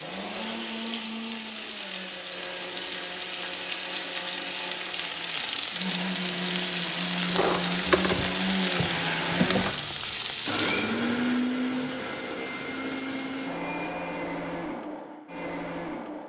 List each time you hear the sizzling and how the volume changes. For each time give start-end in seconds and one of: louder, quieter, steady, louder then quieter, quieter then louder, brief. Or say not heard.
0.0-11.0 louder.